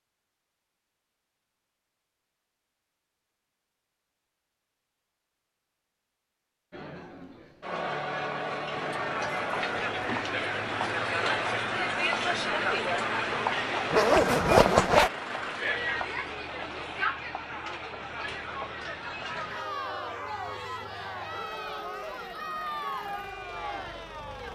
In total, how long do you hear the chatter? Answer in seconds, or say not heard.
18 s.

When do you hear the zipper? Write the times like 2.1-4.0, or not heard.
13.9-15.1.